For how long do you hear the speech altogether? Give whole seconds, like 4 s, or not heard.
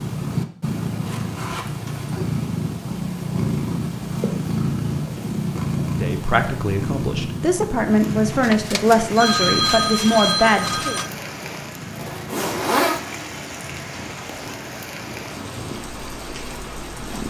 5 s.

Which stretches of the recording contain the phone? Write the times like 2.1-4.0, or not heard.
8.4-11.1.